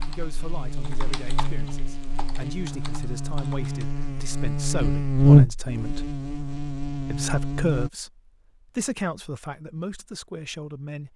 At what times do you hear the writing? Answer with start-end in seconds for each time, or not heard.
not heard.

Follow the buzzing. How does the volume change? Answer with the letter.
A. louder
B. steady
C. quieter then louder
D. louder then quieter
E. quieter
D.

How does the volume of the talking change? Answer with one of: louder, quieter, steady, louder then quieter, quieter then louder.
louder then quieter.